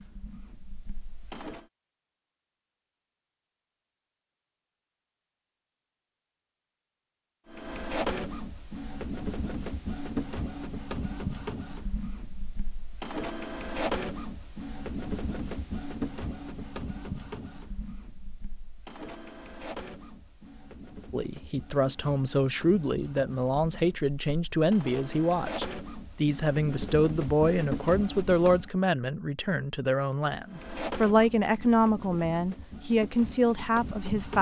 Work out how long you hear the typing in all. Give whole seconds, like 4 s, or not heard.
not heard.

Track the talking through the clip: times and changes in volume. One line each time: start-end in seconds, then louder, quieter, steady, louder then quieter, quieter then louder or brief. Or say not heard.
21.1-34.3 steady.